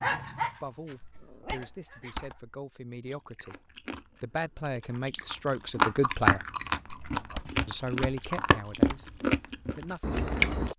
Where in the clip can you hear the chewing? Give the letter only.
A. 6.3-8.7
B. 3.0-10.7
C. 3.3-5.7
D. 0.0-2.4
B.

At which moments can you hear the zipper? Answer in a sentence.
The zipper can't be heard in this clip.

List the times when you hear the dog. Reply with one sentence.
The dog can be heard from 0.0 to 2.4 s.